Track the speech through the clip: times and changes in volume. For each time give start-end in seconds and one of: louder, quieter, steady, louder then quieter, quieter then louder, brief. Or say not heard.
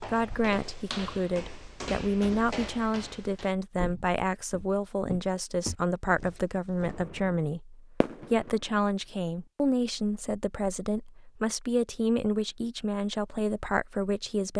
0.0-14.5 steady.